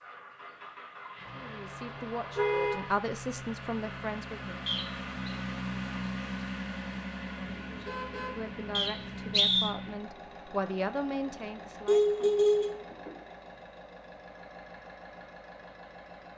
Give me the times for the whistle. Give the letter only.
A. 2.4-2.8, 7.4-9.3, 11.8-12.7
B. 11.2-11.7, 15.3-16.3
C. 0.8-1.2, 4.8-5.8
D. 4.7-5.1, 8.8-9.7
D.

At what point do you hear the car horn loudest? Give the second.
12 s.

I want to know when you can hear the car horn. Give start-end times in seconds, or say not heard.
2.4-2.8, 7.4-9.3, 11.8-12.7.